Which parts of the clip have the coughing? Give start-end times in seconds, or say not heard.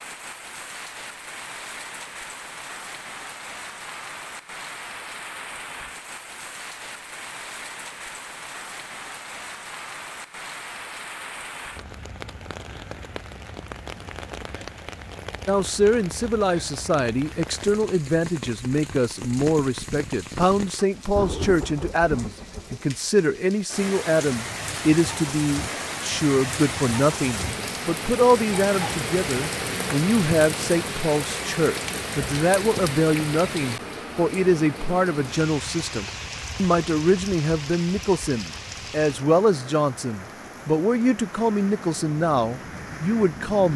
not heard.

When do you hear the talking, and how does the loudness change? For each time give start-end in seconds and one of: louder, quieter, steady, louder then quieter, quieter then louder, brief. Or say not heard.
15.4-43.7 steady.